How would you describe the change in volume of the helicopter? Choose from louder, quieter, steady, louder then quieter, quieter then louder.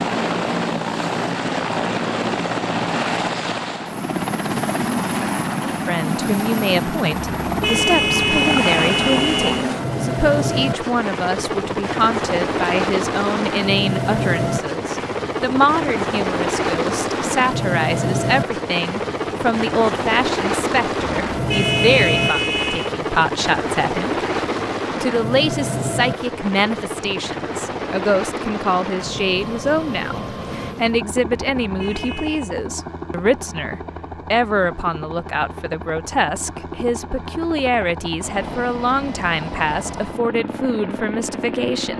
quieter.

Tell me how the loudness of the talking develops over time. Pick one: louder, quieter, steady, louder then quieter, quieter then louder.
steady.